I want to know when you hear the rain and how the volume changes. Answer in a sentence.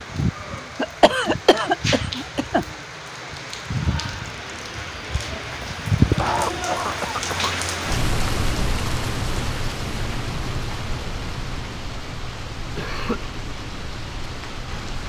You can hear the rain from 0.0 to 15.0 s, getting louder then quieter.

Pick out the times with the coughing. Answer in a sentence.
The coughing can be heard from 0.8 to 2.6 s, from 6.2 to 7.5 s and from 12.8 to 13.2 s.